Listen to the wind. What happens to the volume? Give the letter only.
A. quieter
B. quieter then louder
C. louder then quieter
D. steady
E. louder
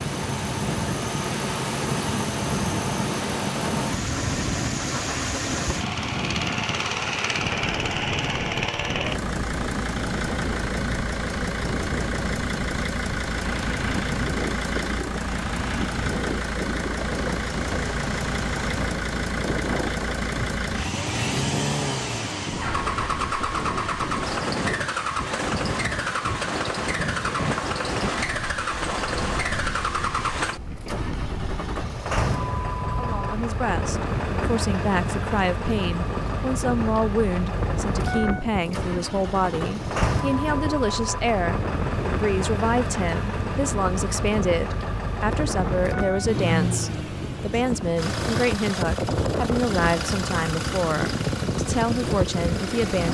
D.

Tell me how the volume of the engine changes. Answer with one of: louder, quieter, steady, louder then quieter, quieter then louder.
steady.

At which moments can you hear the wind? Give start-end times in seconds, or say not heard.
0.0-53.1.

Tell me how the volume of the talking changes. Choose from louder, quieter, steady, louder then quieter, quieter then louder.
steady.